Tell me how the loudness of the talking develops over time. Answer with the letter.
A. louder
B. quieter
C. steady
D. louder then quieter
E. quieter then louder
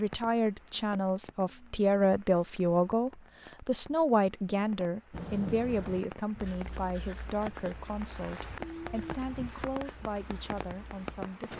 B.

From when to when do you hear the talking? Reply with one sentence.
You can hear the talking from 0.0 to 11.5 s.